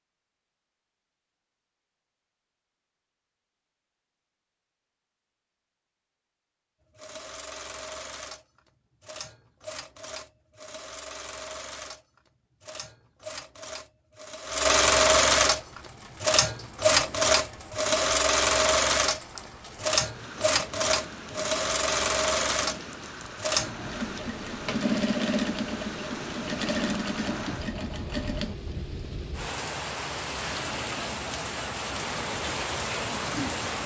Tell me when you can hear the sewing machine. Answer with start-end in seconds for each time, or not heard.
7.0-28.6.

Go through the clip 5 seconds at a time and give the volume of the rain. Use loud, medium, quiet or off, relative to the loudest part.
off, off, off, quiet, medium, medium, loud.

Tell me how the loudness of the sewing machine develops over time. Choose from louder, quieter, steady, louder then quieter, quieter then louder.
louder then quieter.